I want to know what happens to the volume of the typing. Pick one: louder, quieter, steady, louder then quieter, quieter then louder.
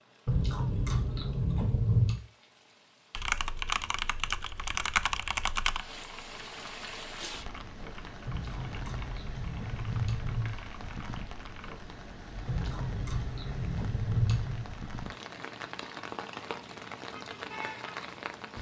quieter.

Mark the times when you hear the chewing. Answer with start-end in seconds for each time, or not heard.
0.2-2.2, 8.2-10.6, 12.4-14.7.